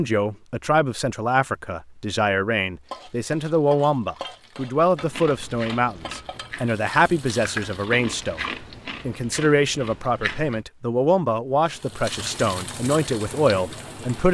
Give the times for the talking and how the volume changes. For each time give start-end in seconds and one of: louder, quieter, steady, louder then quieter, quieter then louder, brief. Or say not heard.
0.0-14.2 steady.